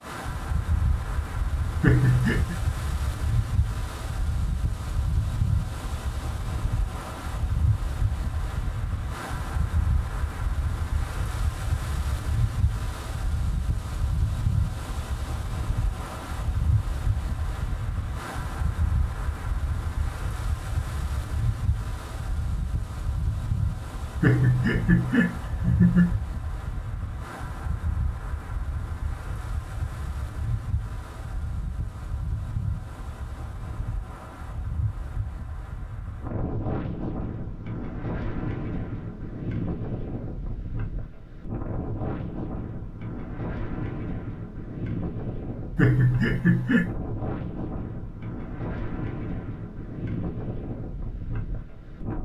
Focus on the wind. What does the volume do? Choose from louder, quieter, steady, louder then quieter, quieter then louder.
steady.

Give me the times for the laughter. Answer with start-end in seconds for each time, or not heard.
1.8-2.5, 24.2-26.1, 45.8-46.9.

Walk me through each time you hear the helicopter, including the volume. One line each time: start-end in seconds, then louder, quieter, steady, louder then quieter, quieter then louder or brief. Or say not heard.
not heard.